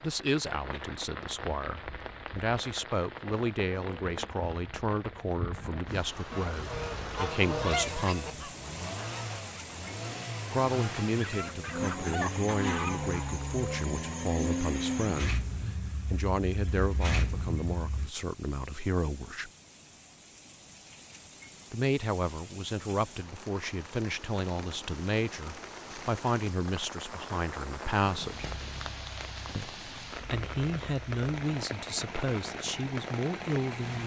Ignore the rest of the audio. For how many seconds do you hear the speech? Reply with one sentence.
The speech can be heard for 29 seconds in total.